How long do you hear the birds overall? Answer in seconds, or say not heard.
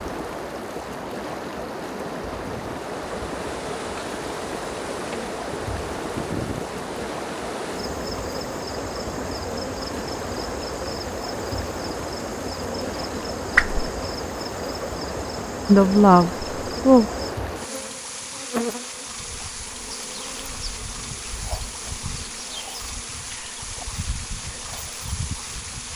not heard.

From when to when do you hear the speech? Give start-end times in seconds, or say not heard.
15.7-17.1.